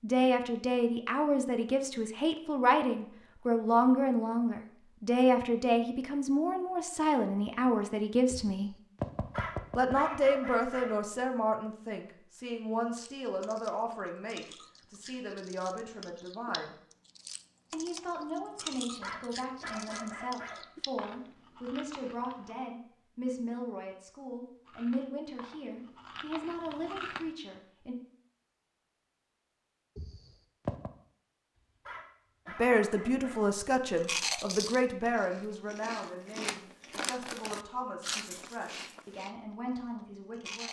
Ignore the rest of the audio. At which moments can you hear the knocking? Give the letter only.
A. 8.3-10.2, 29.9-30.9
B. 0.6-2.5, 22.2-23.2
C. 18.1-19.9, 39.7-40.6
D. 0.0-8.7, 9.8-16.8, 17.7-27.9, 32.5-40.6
A.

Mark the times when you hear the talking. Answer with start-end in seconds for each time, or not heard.
0.0-8.7, 9.8-16.8, 17.7-27.9, 32.5-40.6.